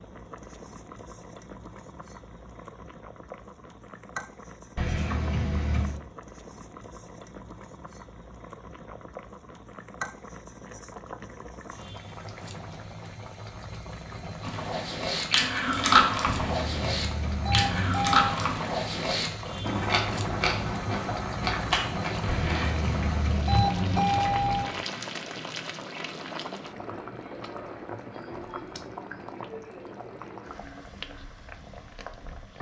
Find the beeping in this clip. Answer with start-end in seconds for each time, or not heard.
4.8-6.0, 16.2-18.4, 22.2-24.7.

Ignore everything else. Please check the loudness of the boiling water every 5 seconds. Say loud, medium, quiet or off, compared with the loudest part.
medium, medium, medium, loud, loud, loud, medium.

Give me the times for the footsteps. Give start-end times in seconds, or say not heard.
not heard.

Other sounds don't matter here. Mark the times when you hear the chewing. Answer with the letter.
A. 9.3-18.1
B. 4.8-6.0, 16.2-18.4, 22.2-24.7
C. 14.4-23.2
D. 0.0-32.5
C.